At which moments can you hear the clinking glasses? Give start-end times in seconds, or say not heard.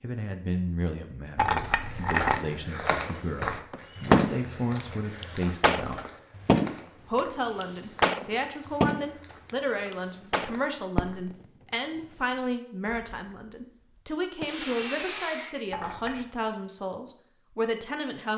1.4-2.4, 15.7-16.2.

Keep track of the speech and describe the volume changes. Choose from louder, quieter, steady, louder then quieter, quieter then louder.
steady.